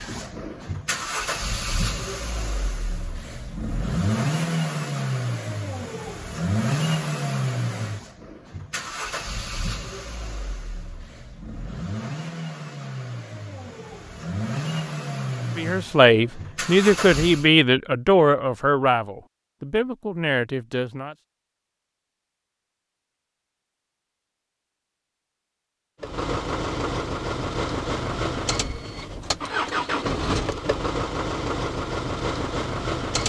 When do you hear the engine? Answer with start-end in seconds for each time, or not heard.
0.0-17.5, 26.0-33.2.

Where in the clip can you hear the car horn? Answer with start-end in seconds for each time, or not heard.
not heard.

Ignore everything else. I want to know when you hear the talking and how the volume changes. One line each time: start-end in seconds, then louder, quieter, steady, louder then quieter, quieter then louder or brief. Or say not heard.
15.6-21.1 quieter.